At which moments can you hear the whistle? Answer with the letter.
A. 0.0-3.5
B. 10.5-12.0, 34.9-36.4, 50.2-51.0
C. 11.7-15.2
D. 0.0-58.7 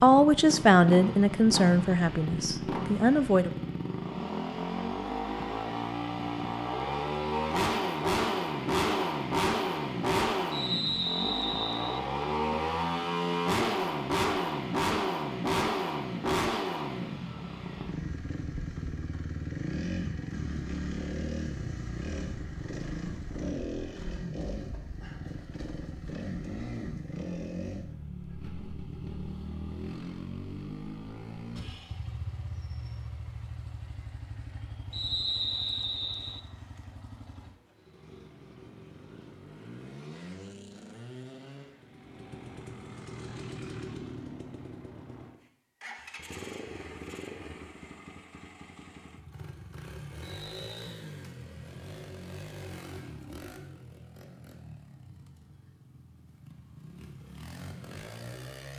B.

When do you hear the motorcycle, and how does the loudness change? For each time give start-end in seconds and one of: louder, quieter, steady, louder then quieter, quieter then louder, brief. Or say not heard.
0.0-58.7 quieter.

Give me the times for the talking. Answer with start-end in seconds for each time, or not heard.
0.0-3.5.